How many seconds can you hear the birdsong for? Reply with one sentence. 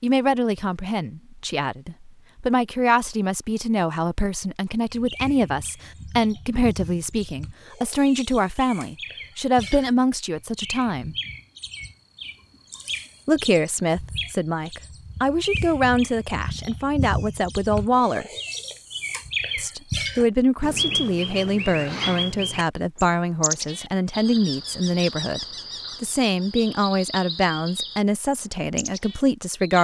You can hear the birdsong for 25 seconds altogether.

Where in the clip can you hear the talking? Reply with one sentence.
The talking can be heard from 0.0 to 11.2 s, from 13.2 to 18.2 s and from 19.6 to 29.8 s.